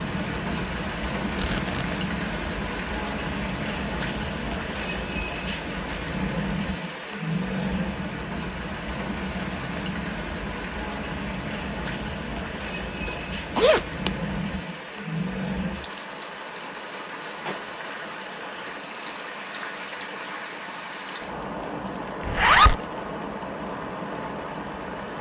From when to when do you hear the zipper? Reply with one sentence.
You can hear the zipper from 1.4 to 1.9 s, from 13.1 to 14.3 s and from 22.2 to 22.8 s.